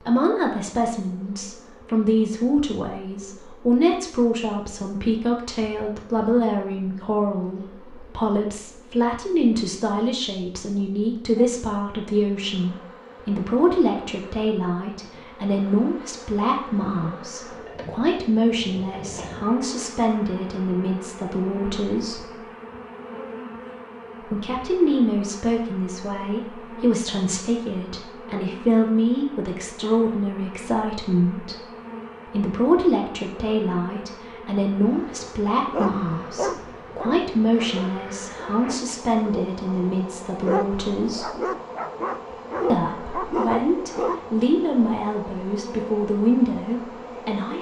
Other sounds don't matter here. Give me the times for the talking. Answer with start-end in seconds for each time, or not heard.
0.0-22.3, 24.2-31.6, 32.2-41.4, 42.7-47.5.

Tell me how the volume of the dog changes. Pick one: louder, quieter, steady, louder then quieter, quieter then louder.
quieter then louder.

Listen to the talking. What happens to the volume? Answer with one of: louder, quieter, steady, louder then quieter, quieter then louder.
steady.